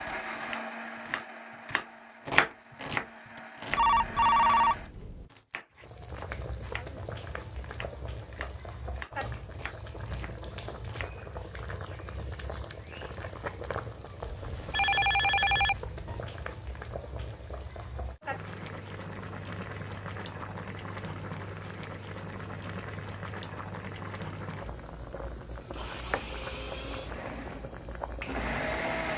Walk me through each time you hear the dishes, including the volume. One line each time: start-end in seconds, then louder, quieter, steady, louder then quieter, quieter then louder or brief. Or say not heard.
not heard.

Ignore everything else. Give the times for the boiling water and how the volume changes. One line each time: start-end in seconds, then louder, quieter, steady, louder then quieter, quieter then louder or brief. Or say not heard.
5.8-29.1 steady.